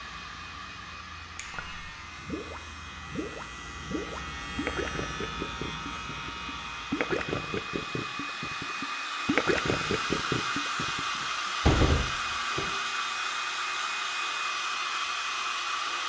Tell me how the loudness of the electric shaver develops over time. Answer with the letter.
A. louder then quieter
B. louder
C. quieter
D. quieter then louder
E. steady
B.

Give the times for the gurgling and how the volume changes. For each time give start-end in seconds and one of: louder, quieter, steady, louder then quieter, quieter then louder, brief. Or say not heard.
1.4-11.0 louder.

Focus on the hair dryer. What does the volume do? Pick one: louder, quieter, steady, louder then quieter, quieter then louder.
louder.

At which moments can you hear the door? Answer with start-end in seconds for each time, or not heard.
10.9-12.8.